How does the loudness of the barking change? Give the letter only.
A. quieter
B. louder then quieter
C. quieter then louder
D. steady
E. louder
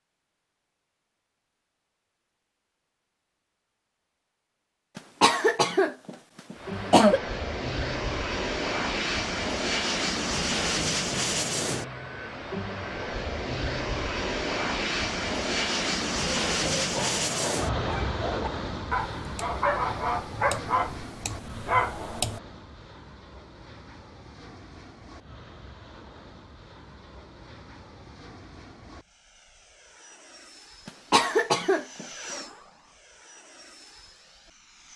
E.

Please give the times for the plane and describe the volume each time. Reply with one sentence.
The plane can be heard from 6.5 to 34.9 s, getting quieter.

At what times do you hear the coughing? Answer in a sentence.
You can hear the coughing from 5.0 to 7.2 s and from 30.9 to 32.0 s.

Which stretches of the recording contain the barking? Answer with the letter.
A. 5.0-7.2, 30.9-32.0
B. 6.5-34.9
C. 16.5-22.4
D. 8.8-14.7
C.